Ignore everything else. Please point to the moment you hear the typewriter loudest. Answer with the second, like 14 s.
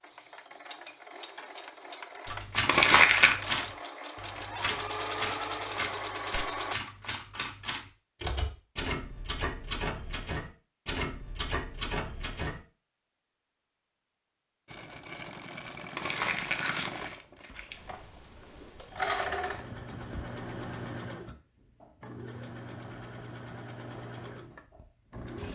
3 s.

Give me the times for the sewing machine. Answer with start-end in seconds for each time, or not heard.
0.0-6.8, 14.7-25.4.